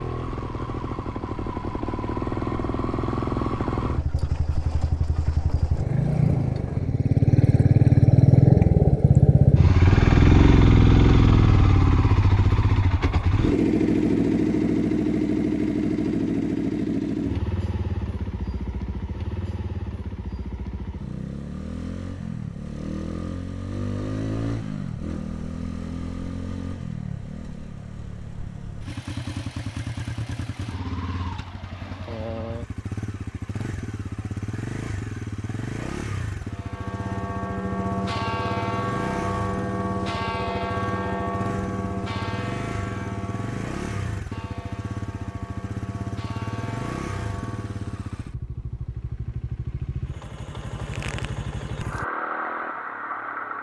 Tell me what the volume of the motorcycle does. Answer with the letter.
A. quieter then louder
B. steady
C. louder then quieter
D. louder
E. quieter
E.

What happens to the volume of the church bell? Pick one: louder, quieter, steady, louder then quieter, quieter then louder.
quieter.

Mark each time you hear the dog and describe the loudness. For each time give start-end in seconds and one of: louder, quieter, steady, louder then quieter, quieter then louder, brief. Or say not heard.
not heard.